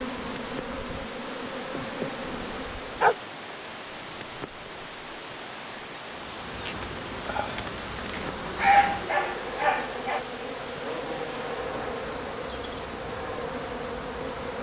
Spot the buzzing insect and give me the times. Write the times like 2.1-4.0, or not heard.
0.0-3.1, 6.0-14.5.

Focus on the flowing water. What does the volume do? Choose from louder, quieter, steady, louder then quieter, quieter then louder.
steady.